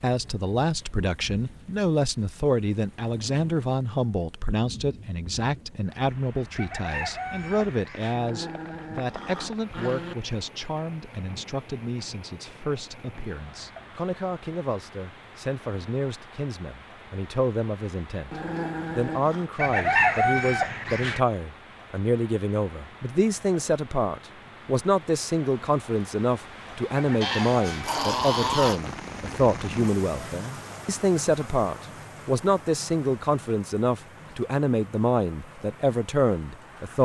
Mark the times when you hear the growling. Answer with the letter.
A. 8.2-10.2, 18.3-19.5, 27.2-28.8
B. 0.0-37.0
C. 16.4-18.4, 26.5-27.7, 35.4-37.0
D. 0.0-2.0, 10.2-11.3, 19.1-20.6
A.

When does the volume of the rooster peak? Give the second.
20 s.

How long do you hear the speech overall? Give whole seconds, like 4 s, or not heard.
37 s.